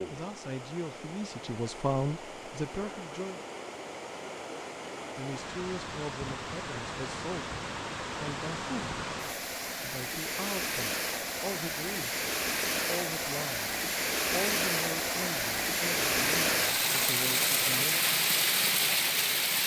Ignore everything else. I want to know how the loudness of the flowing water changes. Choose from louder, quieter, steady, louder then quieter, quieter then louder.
louder.